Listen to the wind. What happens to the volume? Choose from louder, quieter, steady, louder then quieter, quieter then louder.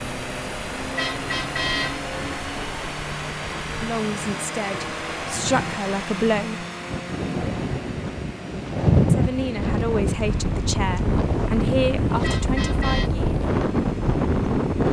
louder.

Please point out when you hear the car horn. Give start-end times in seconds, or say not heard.
0.9-2.6, 12.2-13.1.